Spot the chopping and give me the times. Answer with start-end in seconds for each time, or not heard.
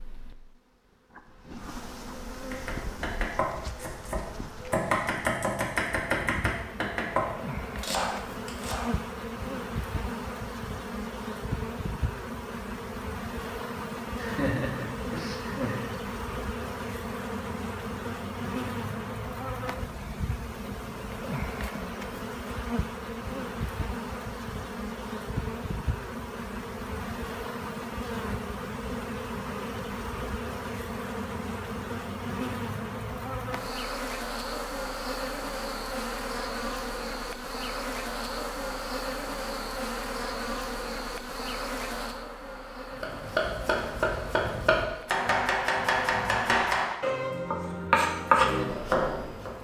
2.3-8.9, 43.0-49.5.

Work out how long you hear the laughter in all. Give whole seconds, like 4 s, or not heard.
2 s.